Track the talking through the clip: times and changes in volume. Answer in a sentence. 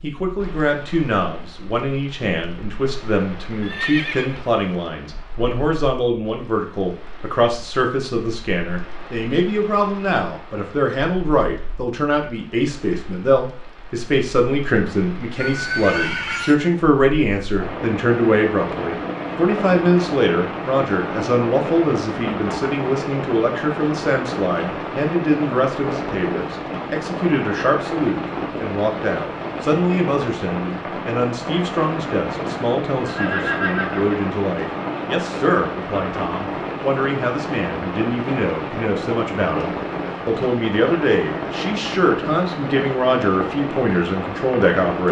You can hear the talking from 0.0 to 45.0 s, at a steady volume.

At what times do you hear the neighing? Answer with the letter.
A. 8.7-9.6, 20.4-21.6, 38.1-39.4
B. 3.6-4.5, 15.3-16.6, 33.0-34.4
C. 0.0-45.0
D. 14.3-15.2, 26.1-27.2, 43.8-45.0
B.